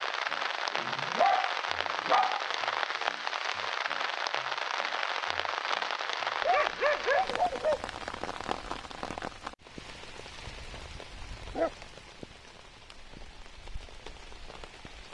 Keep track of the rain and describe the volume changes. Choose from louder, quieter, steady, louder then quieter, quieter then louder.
quieter.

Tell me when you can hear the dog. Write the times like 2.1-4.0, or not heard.
0.7-2.5, 6.4-7.8, 10.4-11.7.